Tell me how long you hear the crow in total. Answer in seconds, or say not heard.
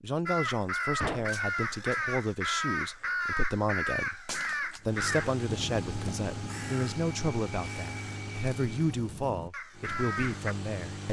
10 s.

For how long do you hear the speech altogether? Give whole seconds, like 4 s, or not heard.
11 s.